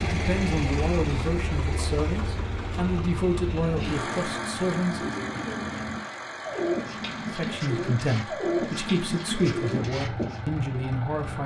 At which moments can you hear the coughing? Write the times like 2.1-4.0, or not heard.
not heard.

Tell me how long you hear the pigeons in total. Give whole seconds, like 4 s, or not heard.
7 s.